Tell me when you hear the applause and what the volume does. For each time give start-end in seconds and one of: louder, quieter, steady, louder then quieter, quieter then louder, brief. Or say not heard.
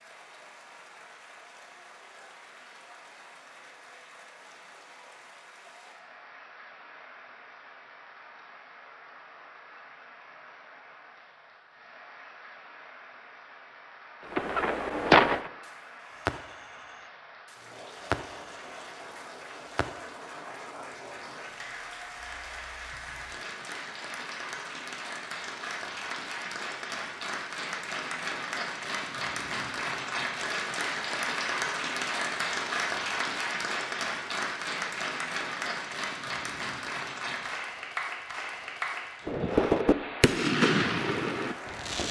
0.0-42.0 louder.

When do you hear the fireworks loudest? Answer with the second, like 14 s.
15 s.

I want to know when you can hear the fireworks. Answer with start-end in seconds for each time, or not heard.
14.3-20.1, 39.2-42.0.